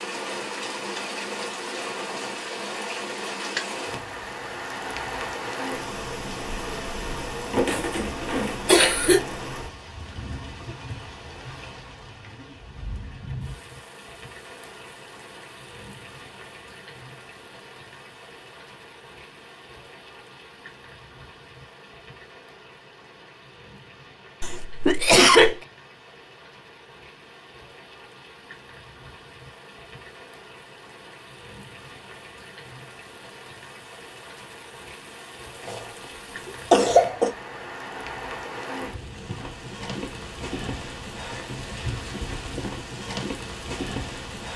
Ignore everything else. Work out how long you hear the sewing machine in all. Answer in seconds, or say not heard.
not heard.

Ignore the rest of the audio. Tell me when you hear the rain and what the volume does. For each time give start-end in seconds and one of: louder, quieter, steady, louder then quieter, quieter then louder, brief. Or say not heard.
0.0-44.5 quieter then louder.